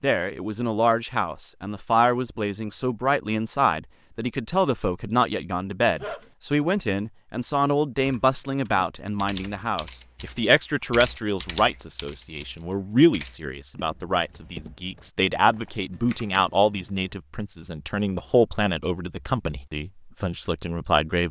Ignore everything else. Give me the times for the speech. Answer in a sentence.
The speech can be heard from 0.0 to 21.2 s.